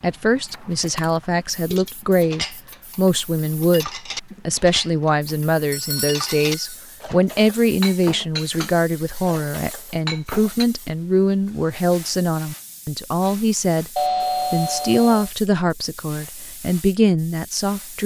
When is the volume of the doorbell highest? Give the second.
14 s.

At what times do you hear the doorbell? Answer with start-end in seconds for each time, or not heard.
5.7-6.6, 13.9-15.3.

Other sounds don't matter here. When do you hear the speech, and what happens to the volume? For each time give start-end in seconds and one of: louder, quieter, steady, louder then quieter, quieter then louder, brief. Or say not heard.
0.0-18.0 steady.